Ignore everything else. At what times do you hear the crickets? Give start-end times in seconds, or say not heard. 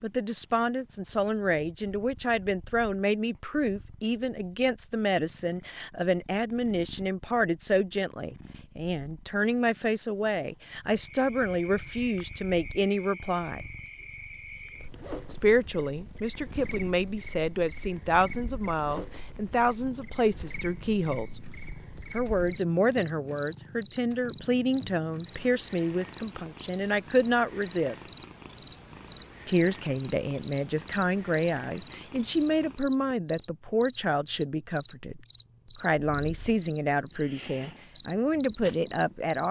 10.9-39.4.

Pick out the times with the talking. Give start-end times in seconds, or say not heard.
0.0-13.7, 15.3-21.4, 22.1-28.1, 29.4-39.4.